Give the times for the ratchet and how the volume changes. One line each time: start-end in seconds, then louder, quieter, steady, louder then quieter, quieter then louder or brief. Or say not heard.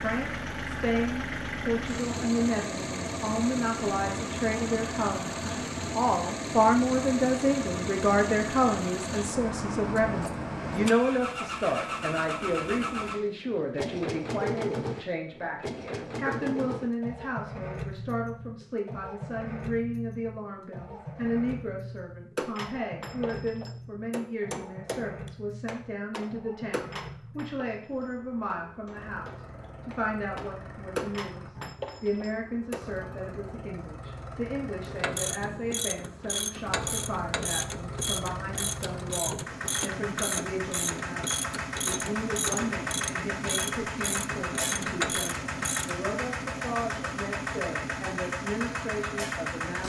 34.9-46.0 steady.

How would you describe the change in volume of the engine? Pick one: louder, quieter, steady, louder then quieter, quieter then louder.
quieter then louder.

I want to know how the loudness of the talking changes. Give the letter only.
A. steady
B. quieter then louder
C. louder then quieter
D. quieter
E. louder
D.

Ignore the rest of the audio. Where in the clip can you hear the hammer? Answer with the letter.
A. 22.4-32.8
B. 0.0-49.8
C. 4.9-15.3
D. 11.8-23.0
A.